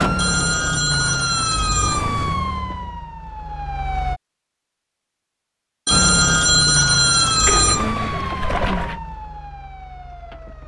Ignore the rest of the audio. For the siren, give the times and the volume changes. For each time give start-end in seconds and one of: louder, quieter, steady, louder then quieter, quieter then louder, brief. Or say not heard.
0.0-4.2 quieter
5.9-10.6 quieter.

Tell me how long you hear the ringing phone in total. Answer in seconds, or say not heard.
4 s.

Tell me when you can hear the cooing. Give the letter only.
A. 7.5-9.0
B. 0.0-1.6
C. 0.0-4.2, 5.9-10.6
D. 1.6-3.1
A.